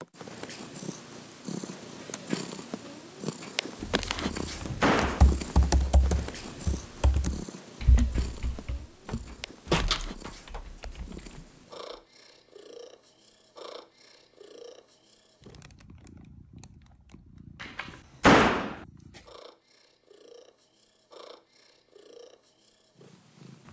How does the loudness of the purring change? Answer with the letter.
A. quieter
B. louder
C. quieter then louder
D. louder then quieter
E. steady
A.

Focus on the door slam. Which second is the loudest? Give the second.
18 s.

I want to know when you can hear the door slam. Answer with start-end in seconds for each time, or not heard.
4.2-5.2, 9.1-10.6, 17.6-18.8.